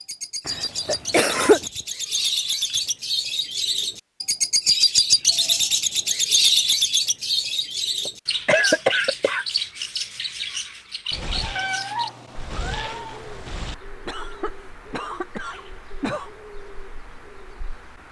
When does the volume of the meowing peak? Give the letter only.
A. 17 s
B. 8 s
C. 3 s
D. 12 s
D.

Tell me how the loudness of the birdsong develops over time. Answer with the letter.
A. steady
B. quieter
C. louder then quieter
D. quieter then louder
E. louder
C.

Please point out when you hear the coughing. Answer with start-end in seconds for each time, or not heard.
0.5-1.6, 8.1-9.4, 14.1-16.4.